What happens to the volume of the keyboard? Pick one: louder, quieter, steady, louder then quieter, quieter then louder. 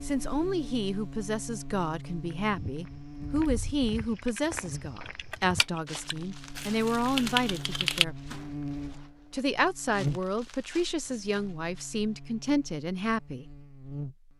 louder.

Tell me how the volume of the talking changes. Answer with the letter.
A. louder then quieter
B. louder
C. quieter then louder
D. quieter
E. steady
E.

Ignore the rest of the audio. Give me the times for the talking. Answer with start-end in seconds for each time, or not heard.
0.0-8.2, 9.3-13.4.